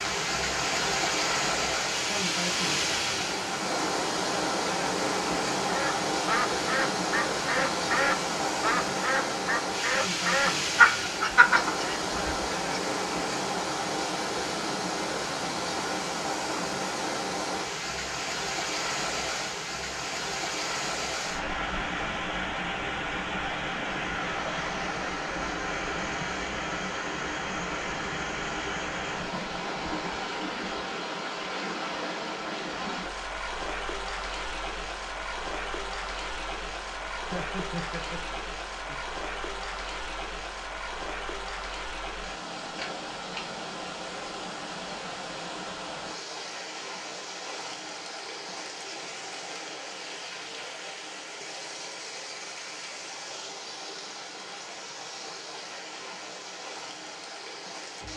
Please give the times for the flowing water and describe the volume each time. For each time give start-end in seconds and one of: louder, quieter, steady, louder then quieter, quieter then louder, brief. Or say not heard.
0.0-58.1 quieter.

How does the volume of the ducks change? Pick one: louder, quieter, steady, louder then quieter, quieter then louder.
louder.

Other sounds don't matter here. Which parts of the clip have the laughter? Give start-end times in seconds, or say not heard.
37.2-39.1.